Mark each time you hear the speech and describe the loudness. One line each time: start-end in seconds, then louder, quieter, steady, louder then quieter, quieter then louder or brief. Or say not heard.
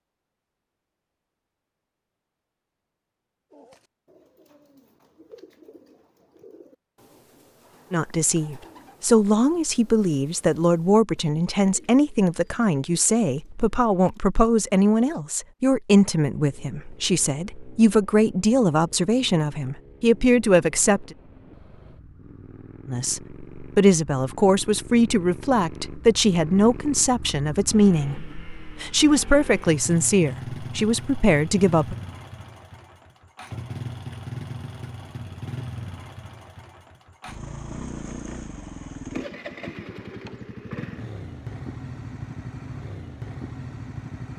7.9-21.1 steady
22.9-31.9 steady.